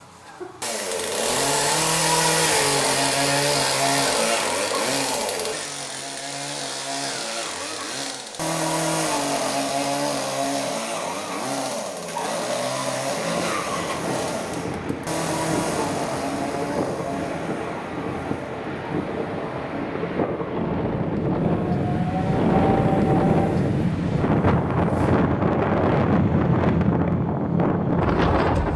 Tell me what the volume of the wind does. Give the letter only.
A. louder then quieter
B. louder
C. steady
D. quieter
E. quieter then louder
B.